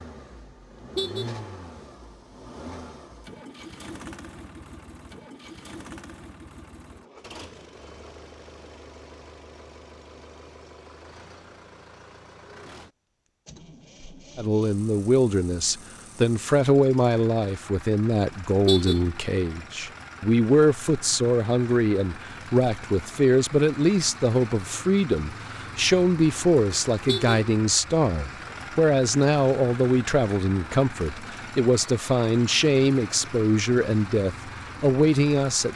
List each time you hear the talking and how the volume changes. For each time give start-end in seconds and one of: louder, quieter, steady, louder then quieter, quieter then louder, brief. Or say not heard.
14.3-35.7 steady.